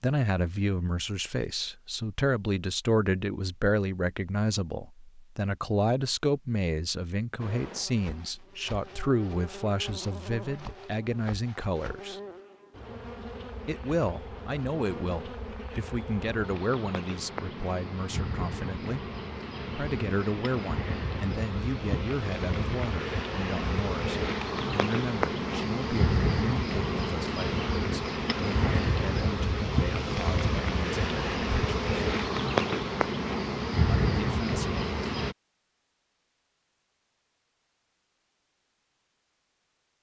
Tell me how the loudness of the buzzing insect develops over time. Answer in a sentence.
The loudness of the buzzing insect goes up.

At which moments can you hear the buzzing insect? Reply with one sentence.
You can hear the buzzing insect from 7.3 to 35.4 s.